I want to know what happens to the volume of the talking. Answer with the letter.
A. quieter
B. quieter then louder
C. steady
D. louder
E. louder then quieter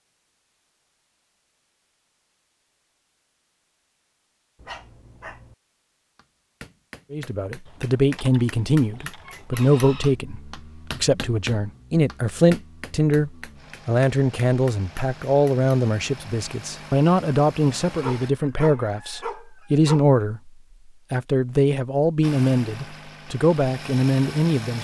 C.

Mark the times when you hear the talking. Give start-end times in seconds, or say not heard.
7.1-20.5, 21.1-24.7.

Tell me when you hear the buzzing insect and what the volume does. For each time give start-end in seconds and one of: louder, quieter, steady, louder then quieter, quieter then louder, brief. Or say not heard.
not heard.